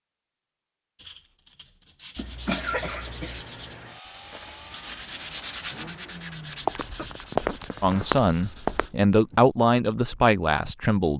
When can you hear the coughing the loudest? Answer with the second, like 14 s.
3 s.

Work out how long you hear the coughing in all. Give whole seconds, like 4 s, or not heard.
3 s.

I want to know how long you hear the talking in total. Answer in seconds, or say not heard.
3 s.